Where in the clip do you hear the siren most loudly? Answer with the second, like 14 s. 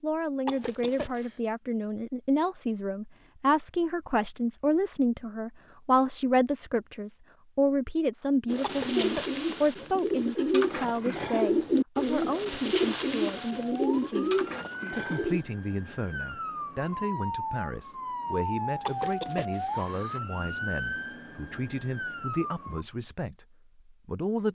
19 s.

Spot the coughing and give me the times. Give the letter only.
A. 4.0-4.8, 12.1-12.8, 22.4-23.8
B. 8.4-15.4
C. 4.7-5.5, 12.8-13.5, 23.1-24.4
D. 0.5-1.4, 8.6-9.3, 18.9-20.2
D.